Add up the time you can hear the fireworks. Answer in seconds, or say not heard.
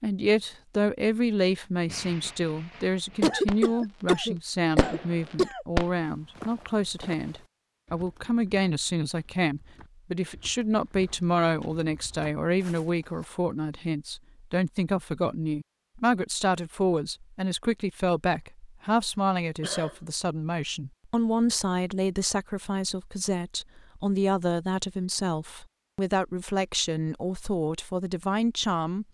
3 s.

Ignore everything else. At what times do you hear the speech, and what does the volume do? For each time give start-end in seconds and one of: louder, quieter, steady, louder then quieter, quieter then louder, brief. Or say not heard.
0.0-29.0 steady.